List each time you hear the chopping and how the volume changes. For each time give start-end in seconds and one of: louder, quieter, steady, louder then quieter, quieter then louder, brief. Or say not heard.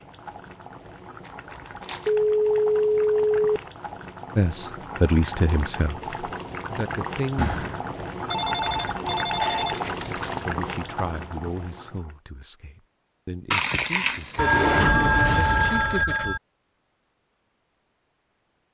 not heard.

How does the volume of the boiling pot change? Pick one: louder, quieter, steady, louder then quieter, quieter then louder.
louder.